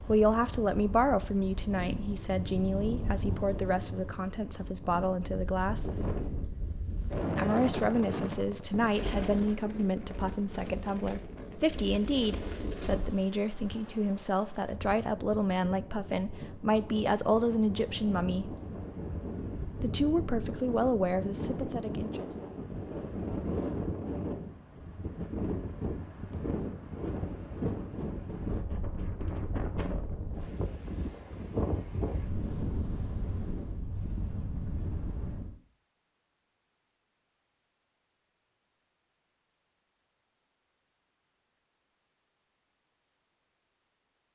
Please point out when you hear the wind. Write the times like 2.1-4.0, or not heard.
0.0-35.5.